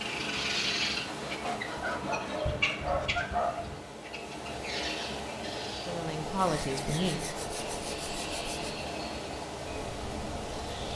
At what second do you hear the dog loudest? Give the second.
3 s.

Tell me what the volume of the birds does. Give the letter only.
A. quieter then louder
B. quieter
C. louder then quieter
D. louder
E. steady
B.